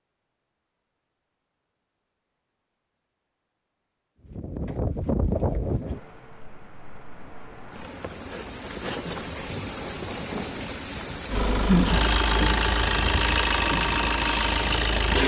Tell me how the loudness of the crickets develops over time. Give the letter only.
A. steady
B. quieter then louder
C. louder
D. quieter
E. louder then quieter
C.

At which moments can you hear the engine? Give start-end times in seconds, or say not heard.
11.2-15.2.